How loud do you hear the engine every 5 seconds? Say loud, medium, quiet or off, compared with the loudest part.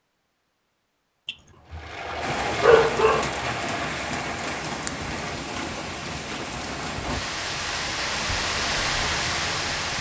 loud, off.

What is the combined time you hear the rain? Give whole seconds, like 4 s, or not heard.
8 s.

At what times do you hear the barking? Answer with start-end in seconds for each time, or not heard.
1.2-1.8, 2.6-3.2.